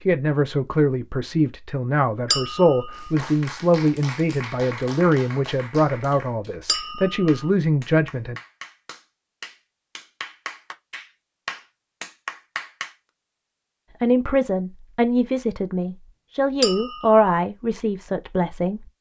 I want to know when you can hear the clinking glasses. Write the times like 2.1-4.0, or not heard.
2.3-3.1, 6.7-7.3, 16.6-17.2.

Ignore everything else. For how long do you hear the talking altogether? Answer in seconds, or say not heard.
13 s.